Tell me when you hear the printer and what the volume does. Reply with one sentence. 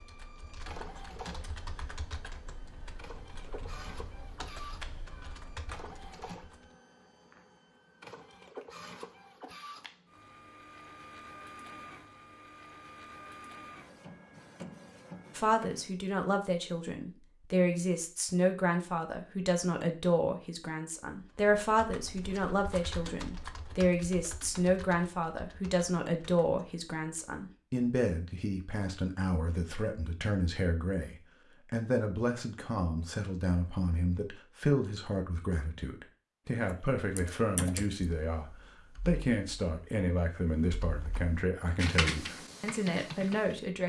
You can hear the printer from 0.0 to 16.0 s, at a steady volume.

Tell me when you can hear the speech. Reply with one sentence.
You can hear the speech from 15.3 to 43.8 s.